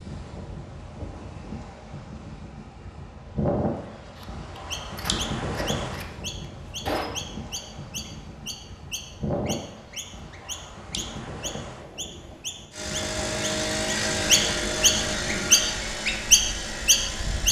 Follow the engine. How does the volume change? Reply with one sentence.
The loudness of the engine goes down.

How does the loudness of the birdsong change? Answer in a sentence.
The volume of the birdsong goes up.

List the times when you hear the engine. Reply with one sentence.
The engine can be heard from 12.7 to 17.4 s.